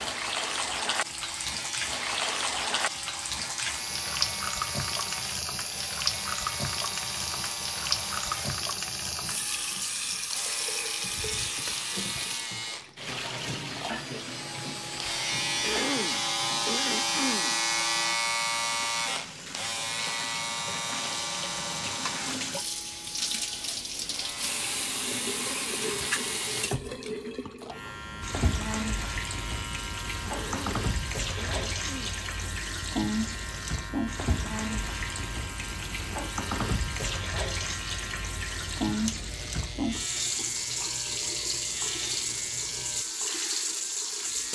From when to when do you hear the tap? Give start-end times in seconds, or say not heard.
0.0-44.4.